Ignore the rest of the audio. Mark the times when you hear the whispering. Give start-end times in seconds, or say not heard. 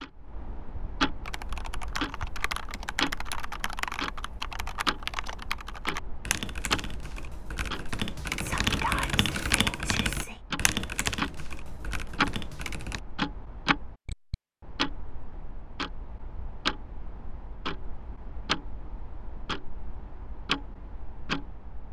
8.4-10.4.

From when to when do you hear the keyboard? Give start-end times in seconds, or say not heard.
1.2-13.0.